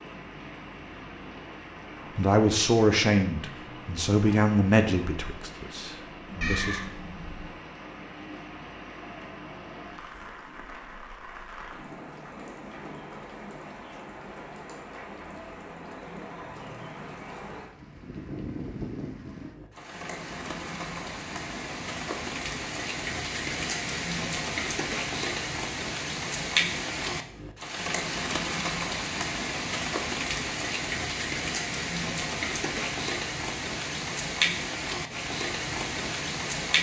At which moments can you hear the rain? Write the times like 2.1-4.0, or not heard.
0.0-36.7.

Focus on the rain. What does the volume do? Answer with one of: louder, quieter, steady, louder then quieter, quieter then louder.
louder.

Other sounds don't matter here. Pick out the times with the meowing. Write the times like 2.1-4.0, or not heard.
6.4-7.5.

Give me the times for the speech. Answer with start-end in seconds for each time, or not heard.
2.1-6.8.